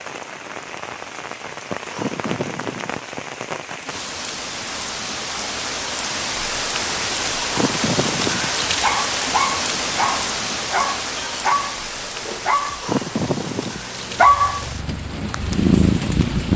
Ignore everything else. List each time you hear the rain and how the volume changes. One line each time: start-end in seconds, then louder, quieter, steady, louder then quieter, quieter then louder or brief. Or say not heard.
0.0-16.5 louder then quieter.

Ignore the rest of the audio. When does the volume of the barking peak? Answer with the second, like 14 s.
14 s.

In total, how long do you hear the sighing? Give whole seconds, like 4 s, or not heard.
3 s.